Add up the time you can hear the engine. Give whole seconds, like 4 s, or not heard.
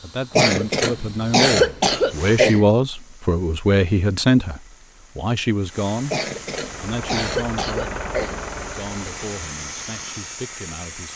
3 s.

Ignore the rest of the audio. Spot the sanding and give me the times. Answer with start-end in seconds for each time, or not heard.
not heard.